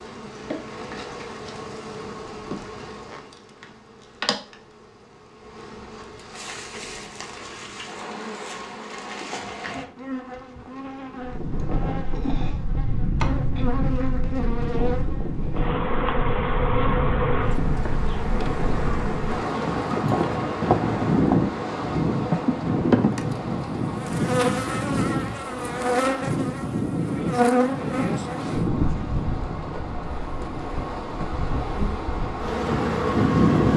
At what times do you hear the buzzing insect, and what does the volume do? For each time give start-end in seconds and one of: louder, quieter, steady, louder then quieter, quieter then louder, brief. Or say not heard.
0.0-33.7 louder.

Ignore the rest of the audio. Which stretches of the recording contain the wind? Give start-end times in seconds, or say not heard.
11.2-33.7.